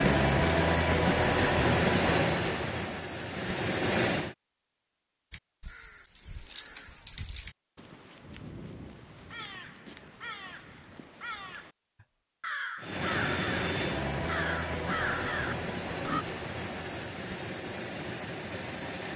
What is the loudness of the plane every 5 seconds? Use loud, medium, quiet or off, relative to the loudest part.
loud, off, medium, medium.